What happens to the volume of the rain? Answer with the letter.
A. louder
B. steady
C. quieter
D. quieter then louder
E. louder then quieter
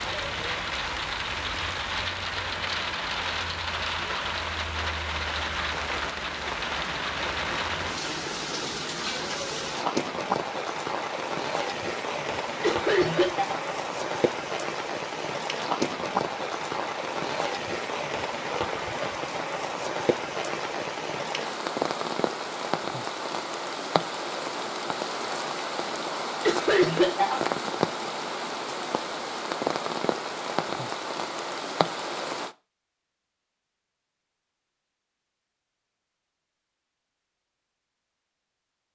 B.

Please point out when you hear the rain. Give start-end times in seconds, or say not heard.
0.0-32.5.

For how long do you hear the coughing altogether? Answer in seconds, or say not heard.
2 s.